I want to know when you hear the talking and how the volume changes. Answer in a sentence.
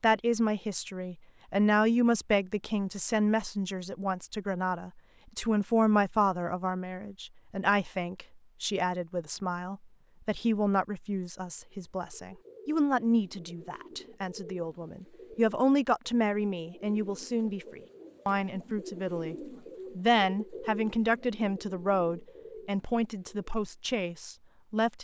You can hear the talking from 0.0 to 24.9 s, at a steady volume.